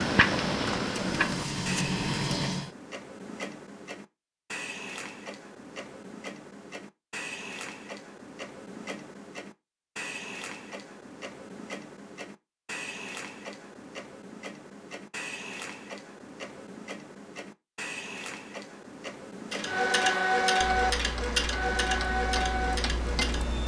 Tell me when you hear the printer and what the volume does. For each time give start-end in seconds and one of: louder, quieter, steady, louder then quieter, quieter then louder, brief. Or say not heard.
0.0-2.7 brief
19.5-23.6 quieter.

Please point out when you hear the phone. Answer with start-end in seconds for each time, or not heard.
not heard.